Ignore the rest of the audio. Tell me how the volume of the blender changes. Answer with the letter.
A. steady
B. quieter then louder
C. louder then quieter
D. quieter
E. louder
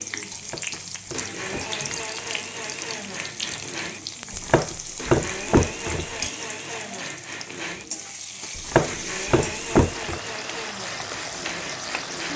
A.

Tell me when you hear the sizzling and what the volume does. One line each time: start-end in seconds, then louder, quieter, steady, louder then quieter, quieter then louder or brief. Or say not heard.
0.0-12.3 steady.